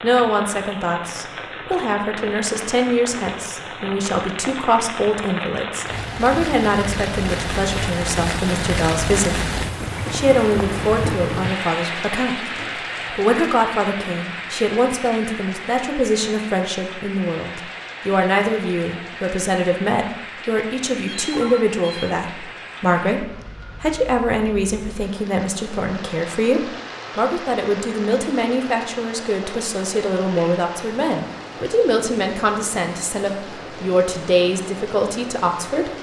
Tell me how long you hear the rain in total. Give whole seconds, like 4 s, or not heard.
36 s.